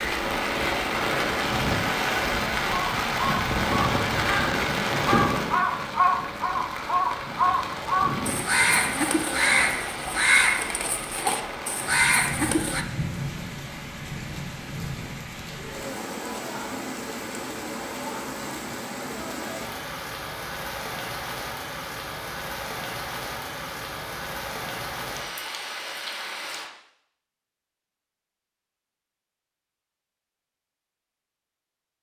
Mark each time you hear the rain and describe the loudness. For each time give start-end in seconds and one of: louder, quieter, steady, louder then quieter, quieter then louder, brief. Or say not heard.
0.0-26.7 quieter.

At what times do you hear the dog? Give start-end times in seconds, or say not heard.
not heard.